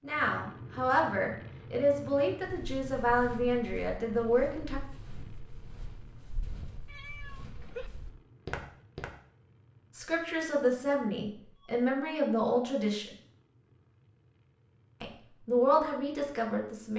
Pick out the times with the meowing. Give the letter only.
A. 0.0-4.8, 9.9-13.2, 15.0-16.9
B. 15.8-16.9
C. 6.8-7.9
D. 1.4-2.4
C.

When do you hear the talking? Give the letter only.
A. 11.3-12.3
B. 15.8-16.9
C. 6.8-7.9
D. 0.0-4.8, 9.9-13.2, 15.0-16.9
D.